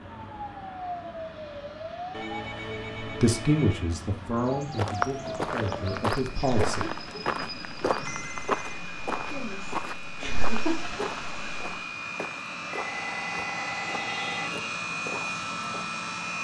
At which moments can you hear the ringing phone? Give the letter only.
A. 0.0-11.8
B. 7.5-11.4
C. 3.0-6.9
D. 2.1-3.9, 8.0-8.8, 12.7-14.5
D.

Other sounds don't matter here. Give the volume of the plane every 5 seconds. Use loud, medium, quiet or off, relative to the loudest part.
quiet, medium, loud, loud.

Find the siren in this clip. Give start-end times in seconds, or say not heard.
0.0-11.8.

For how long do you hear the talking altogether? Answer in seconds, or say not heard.
4 s.